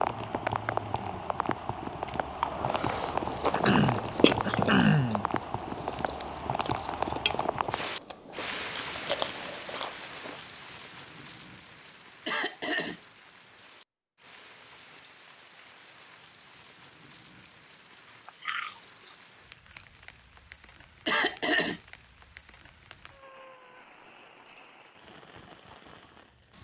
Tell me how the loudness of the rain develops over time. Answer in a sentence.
The loudness of the rain goes down.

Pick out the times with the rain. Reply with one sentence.
You can hear the rain from 0.0 to 26.5 s.